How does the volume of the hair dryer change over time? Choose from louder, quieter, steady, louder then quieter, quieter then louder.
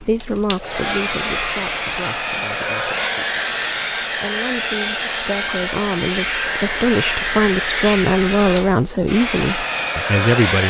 steady.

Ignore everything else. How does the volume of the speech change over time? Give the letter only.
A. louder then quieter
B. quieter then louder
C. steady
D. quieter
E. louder
B.